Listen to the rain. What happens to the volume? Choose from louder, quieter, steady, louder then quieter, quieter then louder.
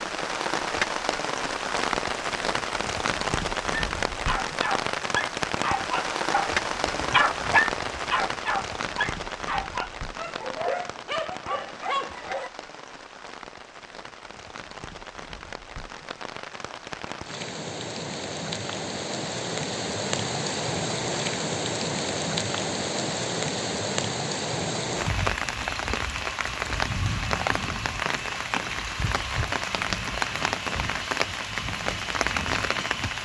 quieter then louder.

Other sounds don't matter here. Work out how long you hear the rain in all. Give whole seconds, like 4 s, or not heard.
33 s.